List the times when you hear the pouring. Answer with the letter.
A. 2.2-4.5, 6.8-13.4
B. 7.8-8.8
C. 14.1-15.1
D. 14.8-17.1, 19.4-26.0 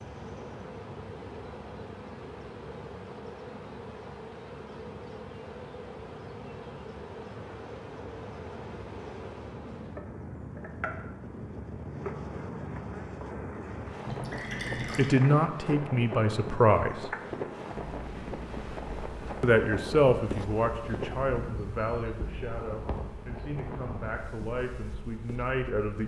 C.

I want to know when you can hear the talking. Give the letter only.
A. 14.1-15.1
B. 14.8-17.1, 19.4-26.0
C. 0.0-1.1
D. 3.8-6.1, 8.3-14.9
B.